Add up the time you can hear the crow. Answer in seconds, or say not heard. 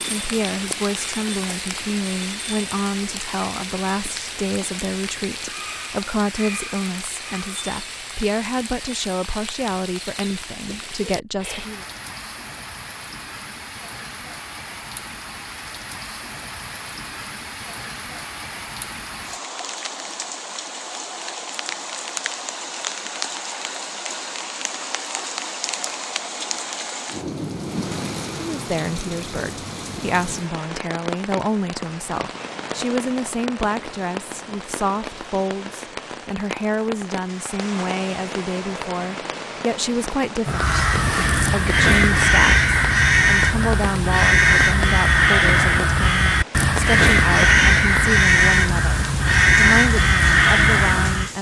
11 s.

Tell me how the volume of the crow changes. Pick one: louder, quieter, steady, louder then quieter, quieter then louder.
steady.